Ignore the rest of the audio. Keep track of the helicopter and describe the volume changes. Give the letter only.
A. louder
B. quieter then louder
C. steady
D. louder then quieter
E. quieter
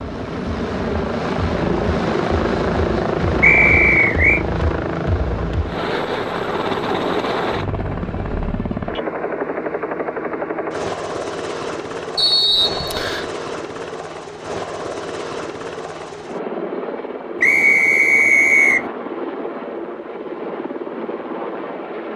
E.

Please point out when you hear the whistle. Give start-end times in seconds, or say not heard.
3.4-4.5, 12.2-13.3, 17.4-18.9.